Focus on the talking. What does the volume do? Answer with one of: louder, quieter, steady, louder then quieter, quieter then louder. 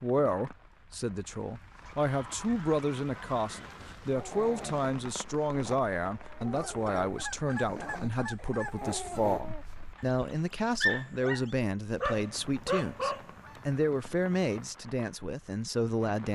steady.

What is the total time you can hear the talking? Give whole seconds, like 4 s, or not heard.
16 s.